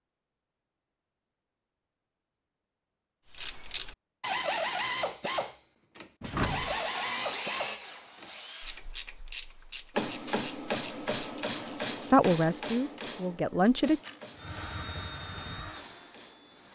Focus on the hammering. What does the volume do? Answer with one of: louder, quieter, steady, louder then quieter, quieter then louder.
quieter.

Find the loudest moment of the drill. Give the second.
7 s.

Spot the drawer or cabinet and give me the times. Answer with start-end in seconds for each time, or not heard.
6.2-6.8.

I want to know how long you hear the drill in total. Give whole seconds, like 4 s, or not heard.
5 s.